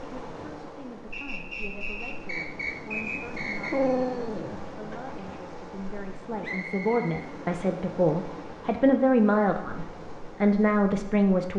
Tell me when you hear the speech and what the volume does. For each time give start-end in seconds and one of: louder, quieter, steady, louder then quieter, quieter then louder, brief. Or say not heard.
0.0-11.5 louder.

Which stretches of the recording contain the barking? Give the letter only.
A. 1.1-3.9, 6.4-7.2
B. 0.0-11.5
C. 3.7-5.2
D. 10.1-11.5
C.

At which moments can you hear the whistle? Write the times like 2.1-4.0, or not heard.
1.1-3.9, 6.4-7.2.